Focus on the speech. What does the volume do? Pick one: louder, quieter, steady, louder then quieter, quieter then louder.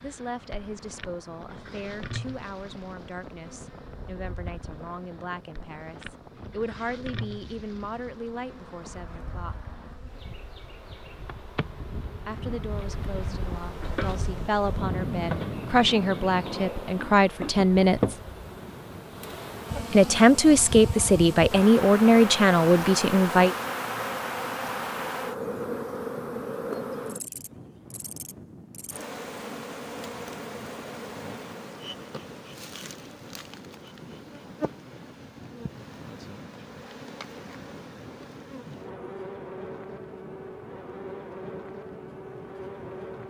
louder.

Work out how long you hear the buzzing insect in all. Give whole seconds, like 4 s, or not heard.
43 s.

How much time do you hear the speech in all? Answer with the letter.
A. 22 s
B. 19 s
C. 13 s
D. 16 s
B.